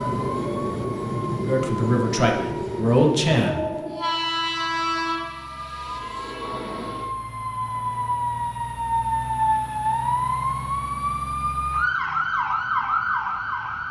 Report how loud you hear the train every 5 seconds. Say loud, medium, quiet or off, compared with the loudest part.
loud, medium, off.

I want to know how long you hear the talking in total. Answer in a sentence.
You can hear the talking for 2 seconds altogether.